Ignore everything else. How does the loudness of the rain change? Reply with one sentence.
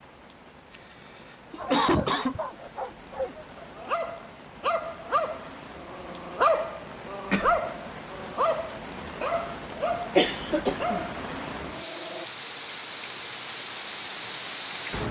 The loudness of the rain goes up.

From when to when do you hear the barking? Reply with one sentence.
You can hear the barking from 1.5 to 12.2 s.